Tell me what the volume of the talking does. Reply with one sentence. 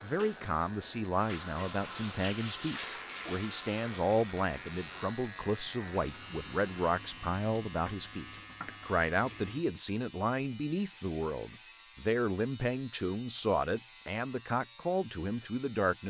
The volume of the talking stays about the same.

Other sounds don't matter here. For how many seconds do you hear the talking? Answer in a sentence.
You can hear the talking for 16 seconds altogether.